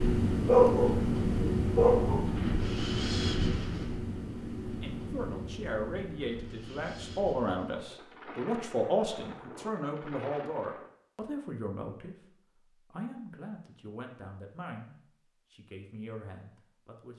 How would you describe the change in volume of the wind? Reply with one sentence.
The loudness of the wind goes down.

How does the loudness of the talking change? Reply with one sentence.
The volume of the talking goes down.